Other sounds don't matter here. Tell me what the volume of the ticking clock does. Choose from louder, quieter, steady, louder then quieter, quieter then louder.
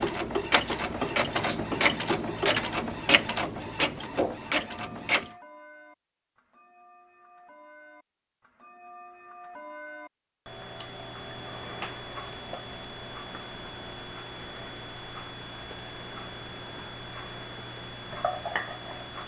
quieter then louder.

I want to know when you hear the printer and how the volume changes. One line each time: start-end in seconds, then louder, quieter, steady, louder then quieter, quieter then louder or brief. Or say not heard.
0.0-5.3 steady.